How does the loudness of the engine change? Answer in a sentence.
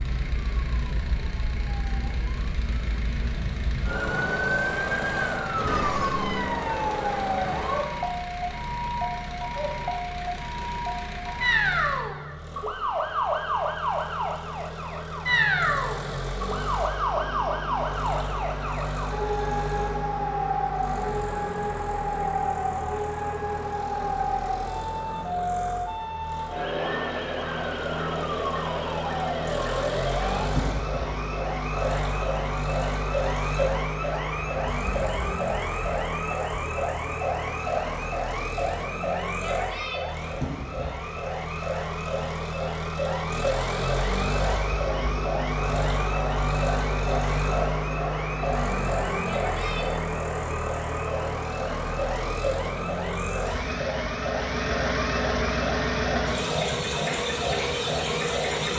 The volume of the engine goes up.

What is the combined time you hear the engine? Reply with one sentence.
You can hear the engine for 59 seconds altogether.